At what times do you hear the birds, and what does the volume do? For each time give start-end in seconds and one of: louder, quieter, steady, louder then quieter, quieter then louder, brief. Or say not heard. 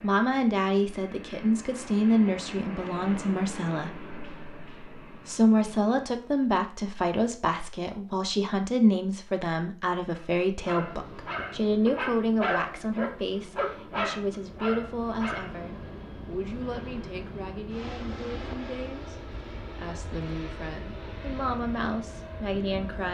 not heard.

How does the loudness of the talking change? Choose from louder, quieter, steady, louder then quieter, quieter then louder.
quieter.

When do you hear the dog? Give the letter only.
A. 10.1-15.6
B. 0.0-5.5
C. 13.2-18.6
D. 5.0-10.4
A.